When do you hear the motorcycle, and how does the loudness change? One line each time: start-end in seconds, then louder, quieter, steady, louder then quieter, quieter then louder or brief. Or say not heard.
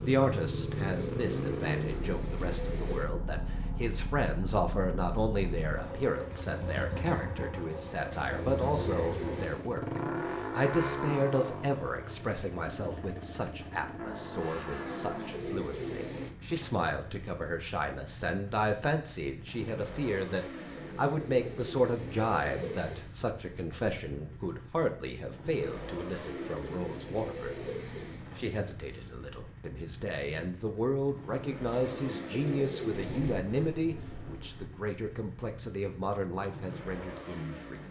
0.0-37.8 quieter.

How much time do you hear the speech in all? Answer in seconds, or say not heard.
37 s.